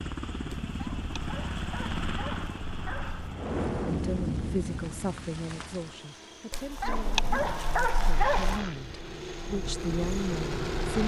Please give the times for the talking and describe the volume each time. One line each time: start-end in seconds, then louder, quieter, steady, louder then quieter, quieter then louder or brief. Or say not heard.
3.9-11.0 quieter then louder.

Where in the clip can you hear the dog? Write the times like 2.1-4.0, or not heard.
0.7-3.4, 6.5-8.7.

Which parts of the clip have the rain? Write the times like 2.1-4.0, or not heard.
3.3-11.0.